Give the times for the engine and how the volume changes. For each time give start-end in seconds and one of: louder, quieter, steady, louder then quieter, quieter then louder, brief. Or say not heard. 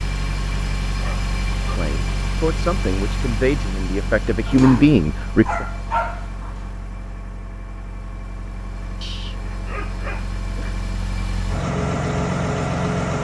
0.0-13.1 quieter then louder.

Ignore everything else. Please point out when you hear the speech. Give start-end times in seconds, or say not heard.
1.7-5.7.